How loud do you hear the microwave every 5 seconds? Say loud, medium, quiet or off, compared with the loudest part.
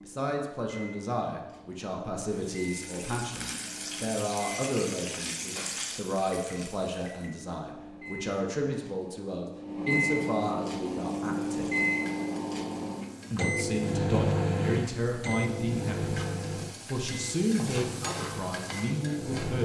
quiet, medium, loud, medium.